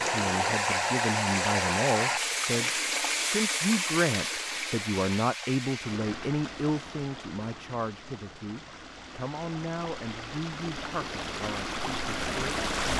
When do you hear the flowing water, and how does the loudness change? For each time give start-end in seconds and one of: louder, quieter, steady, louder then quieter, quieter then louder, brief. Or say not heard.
0.0-12.9 quieter then louder.